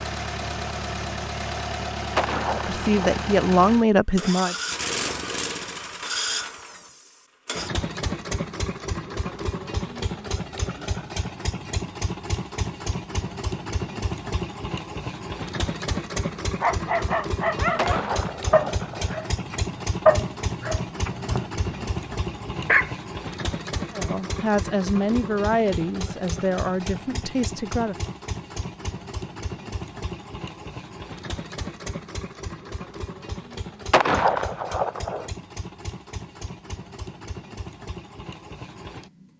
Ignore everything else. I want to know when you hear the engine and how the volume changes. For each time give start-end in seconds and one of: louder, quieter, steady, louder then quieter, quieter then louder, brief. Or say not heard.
0.0-39.3 quieter.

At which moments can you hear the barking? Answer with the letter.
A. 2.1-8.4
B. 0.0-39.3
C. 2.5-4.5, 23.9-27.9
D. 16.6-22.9
D.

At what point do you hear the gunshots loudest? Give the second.
34 s.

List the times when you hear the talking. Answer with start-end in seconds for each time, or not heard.
2.5-4.5, 23.9-27.9.